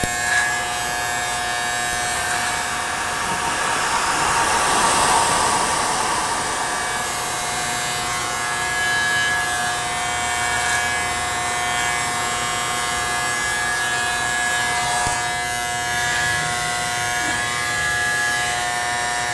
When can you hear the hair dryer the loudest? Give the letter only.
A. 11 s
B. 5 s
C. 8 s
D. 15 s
B.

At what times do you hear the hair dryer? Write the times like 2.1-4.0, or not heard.
0.0-19.1.